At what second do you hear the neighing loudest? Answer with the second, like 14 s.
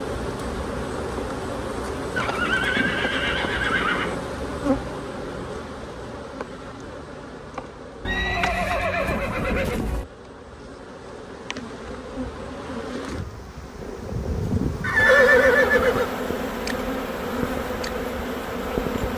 15 s.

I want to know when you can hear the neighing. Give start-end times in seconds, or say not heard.
2.1-4.2, 8.1-10.1, 14.8-16.1.